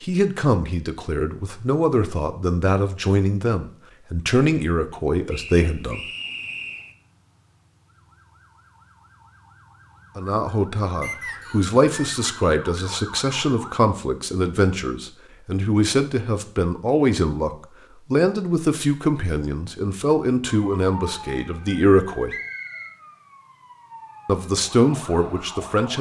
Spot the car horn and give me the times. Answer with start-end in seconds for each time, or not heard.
not heard.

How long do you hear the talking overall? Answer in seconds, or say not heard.
19 s.